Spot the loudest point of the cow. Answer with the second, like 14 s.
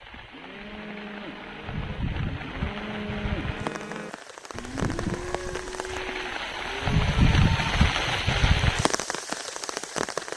5 s.